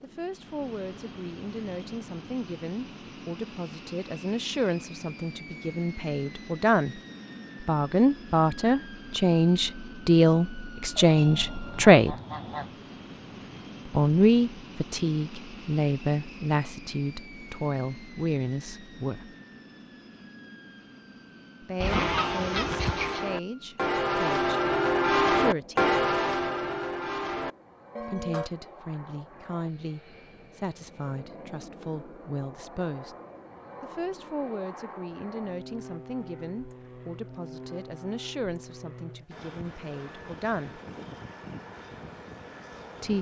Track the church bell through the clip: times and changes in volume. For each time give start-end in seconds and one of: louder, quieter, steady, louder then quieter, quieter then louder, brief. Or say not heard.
21.8-28.5 louder then quieter.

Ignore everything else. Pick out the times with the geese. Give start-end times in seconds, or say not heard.
11.2-12.8, 21.8-23.3.